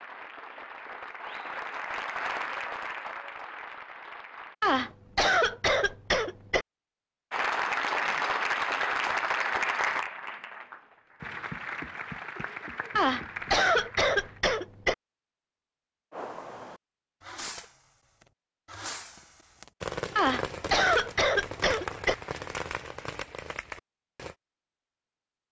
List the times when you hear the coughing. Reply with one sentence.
The coughing can be heard from 4.6 to 6.7 s, from 12.9 to 14.9 s and from 20.1 to 22.1 s.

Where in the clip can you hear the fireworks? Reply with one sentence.
The fireworks can be heard from 16.1 to 24.4 s.